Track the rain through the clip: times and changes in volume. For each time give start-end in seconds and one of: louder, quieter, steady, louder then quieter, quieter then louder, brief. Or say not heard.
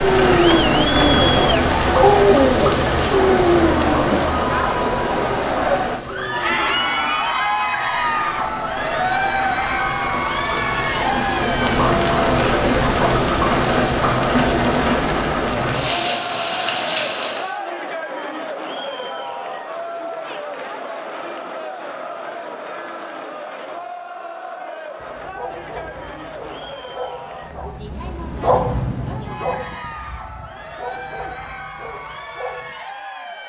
0.0-17.6 quieter then louder.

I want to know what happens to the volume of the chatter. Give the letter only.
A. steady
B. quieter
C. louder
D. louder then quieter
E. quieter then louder
B.